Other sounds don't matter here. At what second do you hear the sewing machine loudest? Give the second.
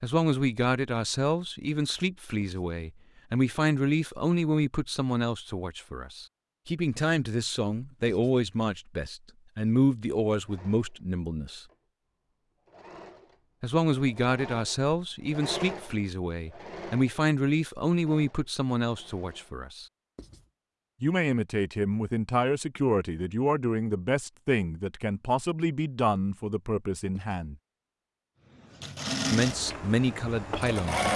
31 s.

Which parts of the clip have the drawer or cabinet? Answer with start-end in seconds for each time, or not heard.
not heard.